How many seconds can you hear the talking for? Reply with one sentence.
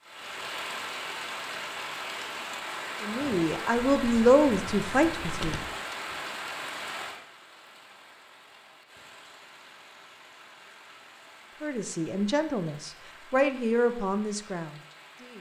You can hear the talking for 6 seconds altogether.